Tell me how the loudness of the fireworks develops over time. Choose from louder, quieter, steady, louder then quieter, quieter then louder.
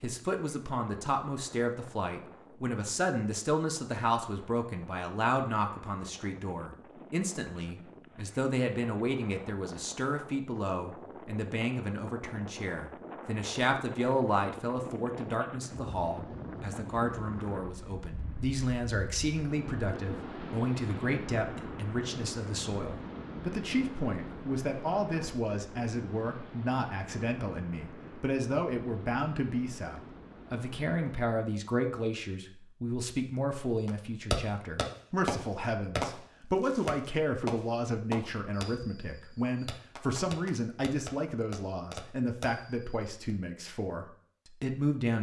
quieter.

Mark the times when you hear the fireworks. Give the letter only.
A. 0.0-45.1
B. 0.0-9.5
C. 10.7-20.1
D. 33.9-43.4
D.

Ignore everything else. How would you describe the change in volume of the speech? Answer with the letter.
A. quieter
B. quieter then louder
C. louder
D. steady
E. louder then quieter
D.